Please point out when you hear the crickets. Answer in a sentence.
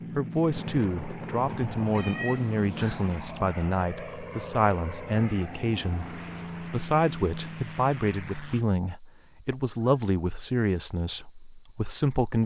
You can hear the crickets from 4.0 to 12.4 s.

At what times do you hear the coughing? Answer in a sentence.
The coughing can't be heard in this clip.